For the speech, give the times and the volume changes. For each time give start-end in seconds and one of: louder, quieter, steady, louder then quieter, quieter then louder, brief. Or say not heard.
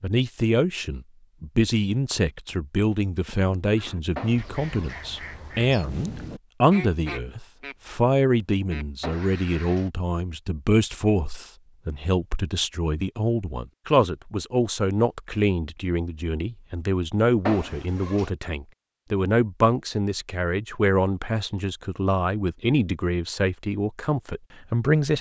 0.0-25.1 steady.